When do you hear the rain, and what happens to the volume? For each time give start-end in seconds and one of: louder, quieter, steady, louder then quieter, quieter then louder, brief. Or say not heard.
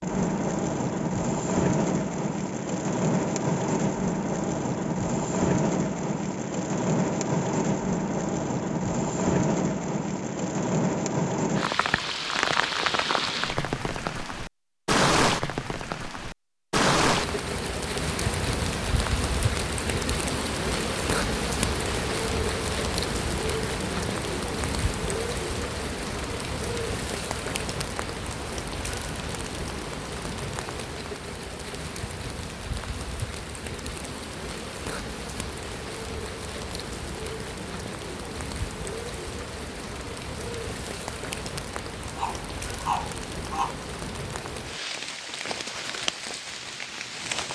0.0-47.5 quieter.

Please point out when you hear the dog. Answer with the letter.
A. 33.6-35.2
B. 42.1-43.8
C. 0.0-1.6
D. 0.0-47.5
B.